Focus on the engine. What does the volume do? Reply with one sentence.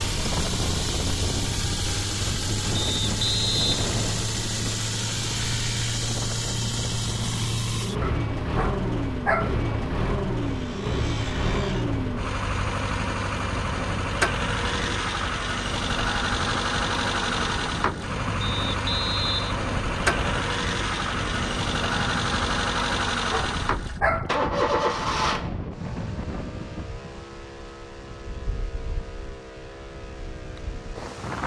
The loudness of the engine goes down.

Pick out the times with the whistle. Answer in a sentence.
The whistle can be heard from 2.8 to 4.3 s and from 18.4 to 20.4 s.